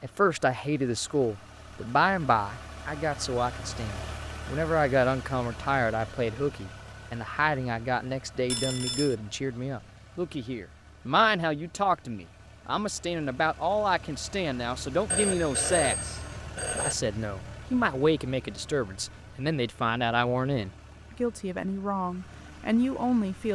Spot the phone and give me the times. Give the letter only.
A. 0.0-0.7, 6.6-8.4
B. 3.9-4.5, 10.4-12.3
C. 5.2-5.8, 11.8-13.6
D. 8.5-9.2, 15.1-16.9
D.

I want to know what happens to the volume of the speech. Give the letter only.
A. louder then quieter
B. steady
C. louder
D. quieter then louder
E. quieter
B.